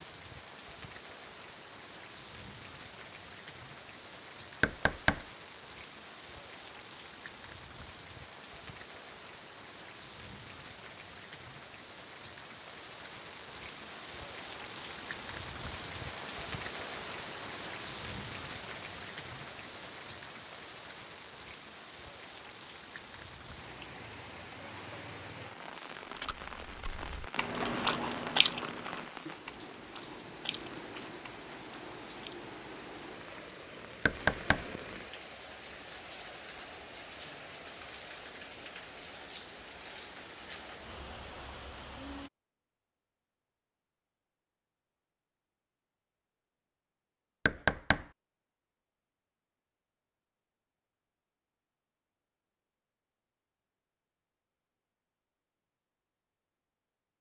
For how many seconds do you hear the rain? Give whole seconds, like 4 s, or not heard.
42 s.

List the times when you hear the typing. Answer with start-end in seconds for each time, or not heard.
not heard.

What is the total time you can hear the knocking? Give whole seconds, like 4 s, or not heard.
2 s.